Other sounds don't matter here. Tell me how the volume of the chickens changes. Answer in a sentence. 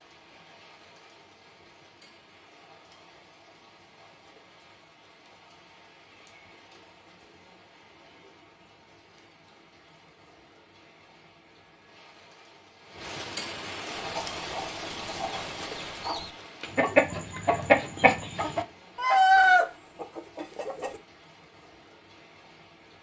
The loudness of the chickens goes up.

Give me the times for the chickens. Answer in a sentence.
The chickens can be heard from 13.9 to 20.9 s.